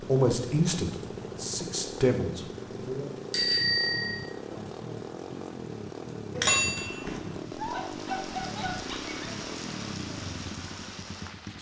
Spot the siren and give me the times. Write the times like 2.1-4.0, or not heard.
not heard.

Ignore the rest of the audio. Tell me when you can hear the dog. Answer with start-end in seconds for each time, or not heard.
7.5-9.3.